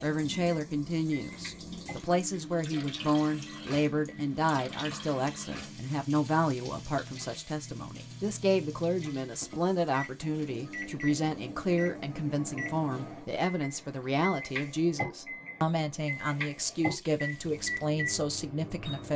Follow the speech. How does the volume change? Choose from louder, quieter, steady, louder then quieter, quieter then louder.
steady.